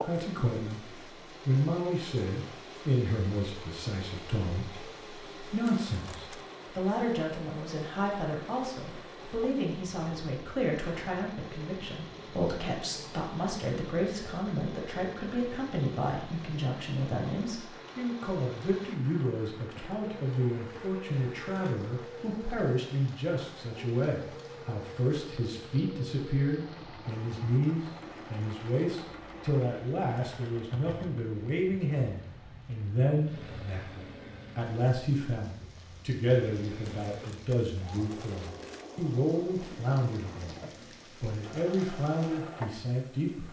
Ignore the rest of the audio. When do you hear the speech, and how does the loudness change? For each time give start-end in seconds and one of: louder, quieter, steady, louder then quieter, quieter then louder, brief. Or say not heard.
0.0-0.8 brief
1.4-40.5 steady
41.2-43.4 brief.